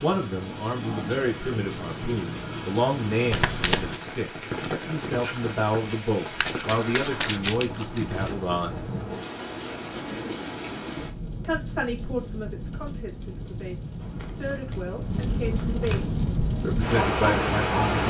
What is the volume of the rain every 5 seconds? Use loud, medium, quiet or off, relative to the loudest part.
medium, medium, medium, loud.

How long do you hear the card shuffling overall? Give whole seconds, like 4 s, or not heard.
5 s.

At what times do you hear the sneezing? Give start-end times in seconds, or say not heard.
not heard.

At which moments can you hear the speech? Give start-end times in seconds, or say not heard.
0.0-8.8, 11.4-18.0.